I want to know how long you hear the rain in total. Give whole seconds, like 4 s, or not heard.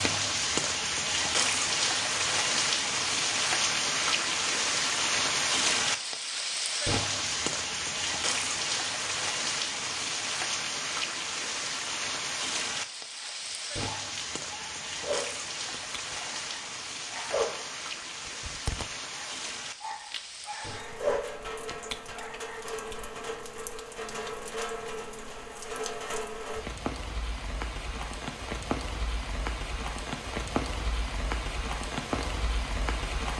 33 s.